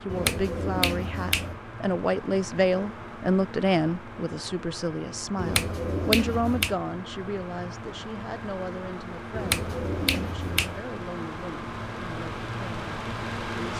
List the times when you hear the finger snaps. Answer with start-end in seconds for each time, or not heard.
0.1-1.6, 5.3-6.8, 9.3-10.8.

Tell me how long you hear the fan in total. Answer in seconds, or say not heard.
14 s.